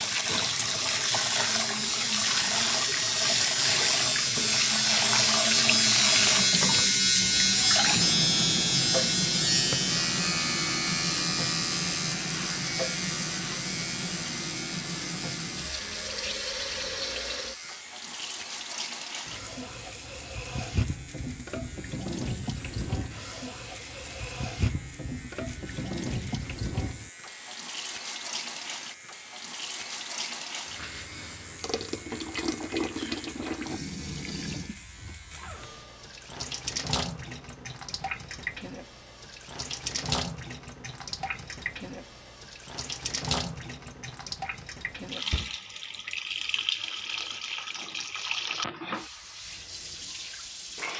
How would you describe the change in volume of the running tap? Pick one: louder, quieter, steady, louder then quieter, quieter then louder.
quieter.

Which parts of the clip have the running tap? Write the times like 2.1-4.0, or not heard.
0.0-50.9.